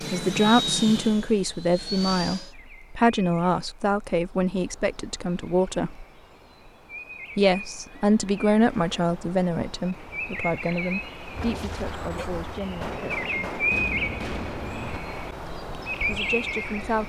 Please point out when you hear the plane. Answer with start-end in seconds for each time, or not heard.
0.0-2.5.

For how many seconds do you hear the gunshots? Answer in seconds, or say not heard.
4 s.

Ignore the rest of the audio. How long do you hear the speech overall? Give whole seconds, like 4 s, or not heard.
13 s.